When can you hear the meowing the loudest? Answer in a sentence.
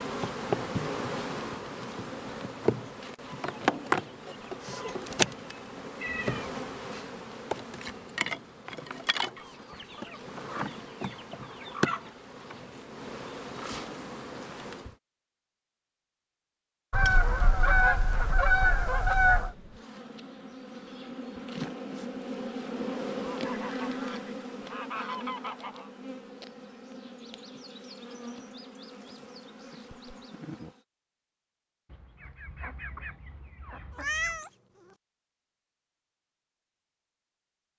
The loudest moment of the meowing is at 34 seconds.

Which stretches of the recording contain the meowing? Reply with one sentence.
You can hear the meowing from 6.0 to 7.1 s and from 33.9 to 35.0 s.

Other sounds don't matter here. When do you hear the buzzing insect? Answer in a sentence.
You can hear the buzzing insect from 0.0 to 14.9 s and from 19.3 to 30.8 s.